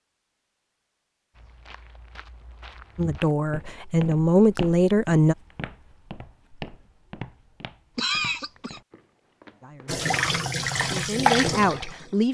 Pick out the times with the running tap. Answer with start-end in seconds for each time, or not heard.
9.8-12.3.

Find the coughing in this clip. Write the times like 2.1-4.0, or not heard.
8.0-8.8.